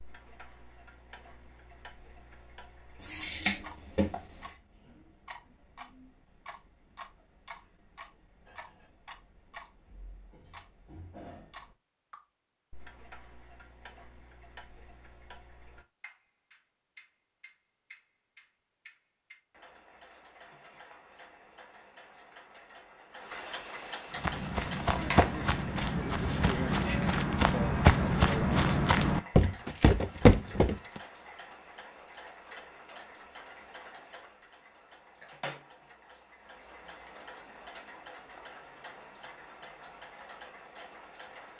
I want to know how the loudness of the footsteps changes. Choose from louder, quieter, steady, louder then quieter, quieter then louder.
louder.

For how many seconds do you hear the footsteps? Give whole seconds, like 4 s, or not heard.
7 s.